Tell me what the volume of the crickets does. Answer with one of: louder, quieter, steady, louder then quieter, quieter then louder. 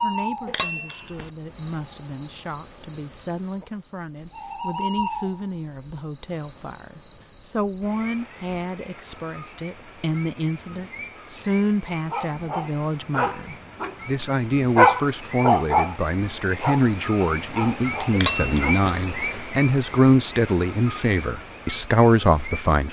louder.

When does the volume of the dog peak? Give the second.
15 s.